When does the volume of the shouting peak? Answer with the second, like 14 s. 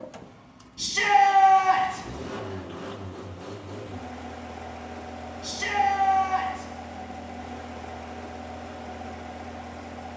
1 s.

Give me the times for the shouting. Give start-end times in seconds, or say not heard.
0.8-2.0, 5.4-6.7.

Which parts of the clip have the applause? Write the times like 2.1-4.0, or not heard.
not heard.